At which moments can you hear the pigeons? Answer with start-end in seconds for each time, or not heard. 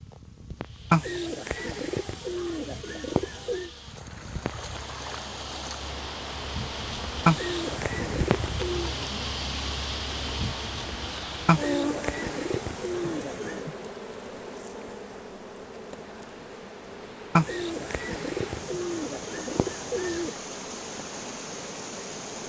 0.9-3.7, 7.2-8.9, 11.4-13.7, 17.4-20.4.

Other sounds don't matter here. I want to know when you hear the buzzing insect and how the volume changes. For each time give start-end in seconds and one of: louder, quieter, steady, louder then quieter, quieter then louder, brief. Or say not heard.
0.0-22.4 louder then quieter.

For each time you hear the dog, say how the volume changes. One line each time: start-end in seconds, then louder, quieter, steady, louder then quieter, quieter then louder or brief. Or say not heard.
not heard.